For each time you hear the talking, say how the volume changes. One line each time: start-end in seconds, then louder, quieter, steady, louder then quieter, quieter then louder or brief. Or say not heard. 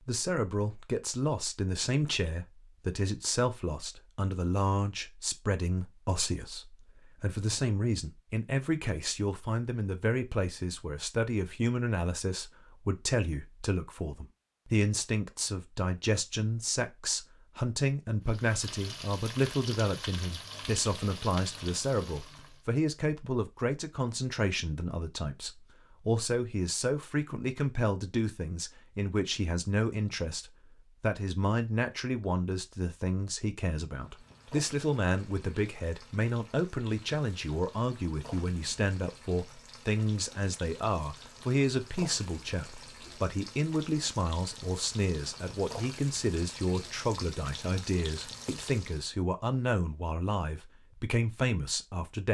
0.1-52.2 steady.